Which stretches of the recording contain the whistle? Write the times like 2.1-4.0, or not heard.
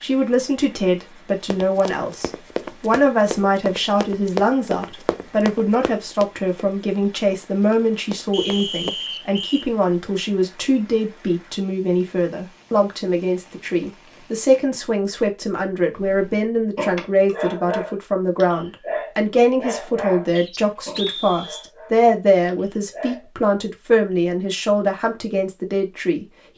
8.3-9.7, 20.4-21.7.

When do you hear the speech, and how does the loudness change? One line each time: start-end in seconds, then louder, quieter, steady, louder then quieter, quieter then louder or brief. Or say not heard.
0.0-26.2 steady.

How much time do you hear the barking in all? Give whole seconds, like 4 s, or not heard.
7 s.